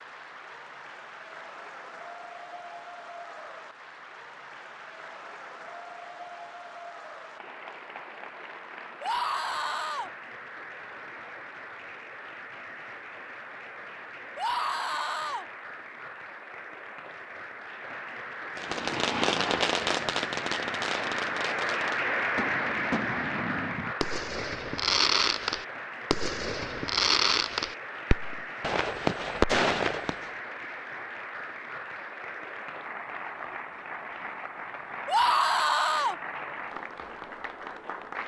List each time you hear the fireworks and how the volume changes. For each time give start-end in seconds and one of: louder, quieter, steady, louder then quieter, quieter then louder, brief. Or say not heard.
18.6-30.3 quieter then louder.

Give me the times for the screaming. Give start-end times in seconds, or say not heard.
9.0-10.1, 14.3-15.4, 35.0-36.1.